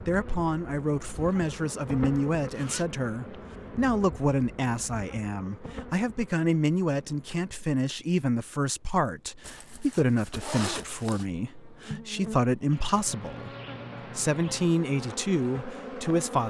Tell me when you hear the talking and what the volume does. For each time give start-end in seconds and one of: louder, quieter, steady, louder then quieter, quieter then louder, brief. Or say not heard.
0.0-13.5 steady
14.2-16.4 brief.